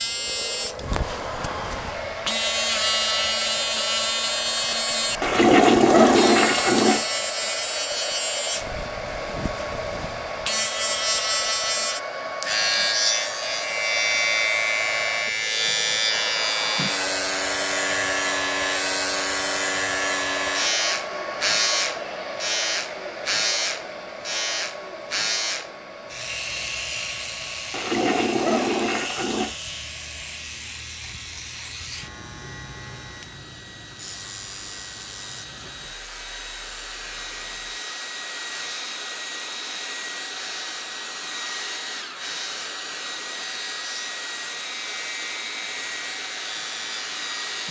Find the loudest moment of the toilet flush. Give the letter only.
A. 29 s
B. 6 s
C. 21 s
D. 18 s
B.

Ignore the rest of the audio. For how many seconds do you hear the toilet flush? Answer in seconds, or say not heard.
4 s.